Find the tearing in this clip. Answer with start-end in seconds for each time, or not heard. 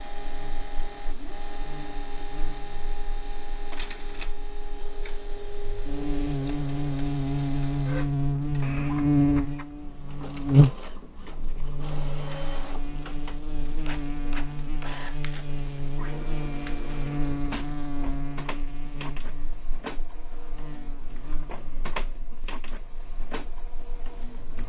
not heard.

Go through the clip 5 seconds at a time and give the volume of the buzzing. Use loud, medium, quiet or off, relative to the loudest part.
quiet, loud, loud, medium, quiet.